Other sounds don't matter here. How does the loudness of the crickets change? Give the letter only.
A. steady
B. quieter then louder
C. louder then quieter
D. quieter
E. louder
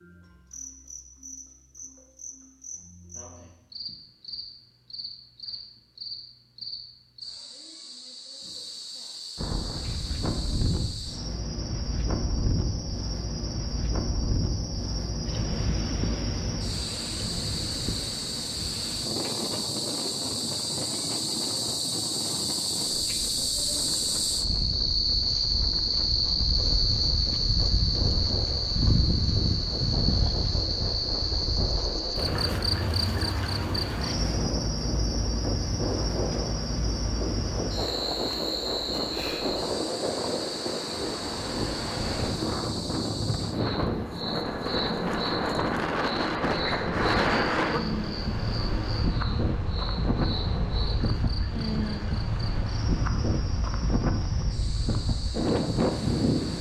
C.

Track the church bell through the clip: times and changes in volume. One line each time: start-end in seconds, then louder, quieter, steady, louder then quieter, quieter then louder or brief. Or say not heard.
not heard.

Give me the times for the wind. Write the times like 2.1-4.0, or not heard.
9.3-56.5.